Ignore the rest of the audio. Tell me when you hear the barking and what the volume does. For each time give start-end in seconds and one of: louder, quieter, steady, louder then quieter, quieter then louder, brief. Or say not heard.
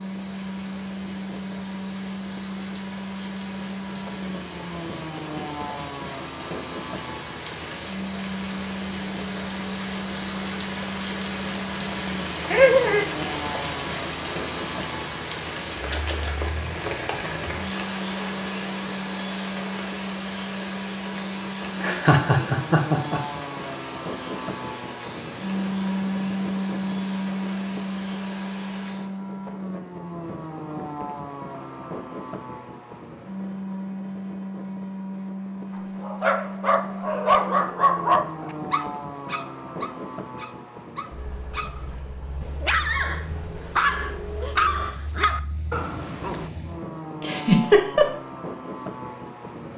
35.8-46.5 quieter then louder.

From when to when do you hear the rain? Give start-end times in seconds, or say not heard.
0.0-29.1.